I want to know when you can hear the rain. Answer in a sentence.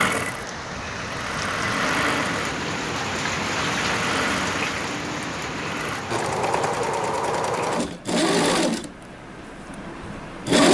The rain can be heard from 0.0 to 7.8 s.